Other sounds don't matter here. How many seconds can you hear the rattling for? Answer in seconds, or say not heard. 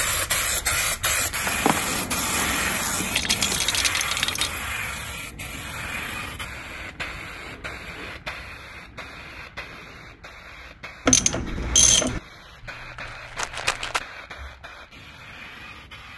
3 s.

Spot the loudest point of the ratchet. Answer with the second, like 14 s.
12 s.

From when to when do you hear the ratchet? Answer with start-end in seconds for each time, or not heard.
1.4-3.6, 11.1-12.2.